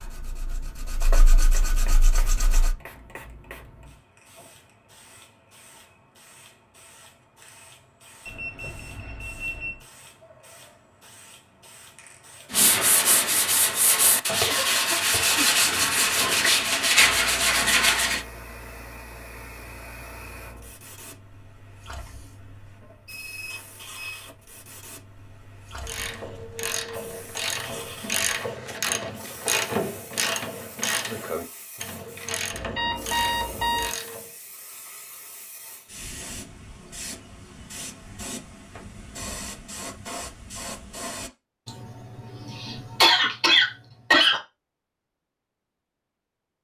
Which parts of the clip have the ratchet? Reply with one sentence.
The ratchet can be heard from 25.8 to 34.4 s.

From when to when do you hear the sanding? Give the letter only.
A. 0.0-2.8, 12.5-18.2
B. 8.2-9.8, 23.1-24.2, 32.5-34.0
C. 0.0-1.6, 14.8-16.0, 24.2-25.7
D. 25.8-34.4
A.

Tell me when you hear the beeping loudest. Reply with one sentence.
The loudest moment of the beeping is at 33 seconds.